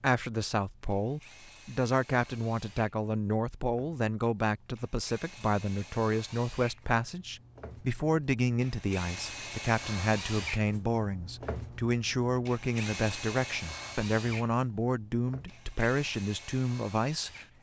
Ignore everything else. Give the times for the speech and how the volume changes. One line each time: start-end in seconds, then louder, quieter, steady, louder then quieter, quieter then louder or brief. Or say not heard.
0.0-17.4 steady.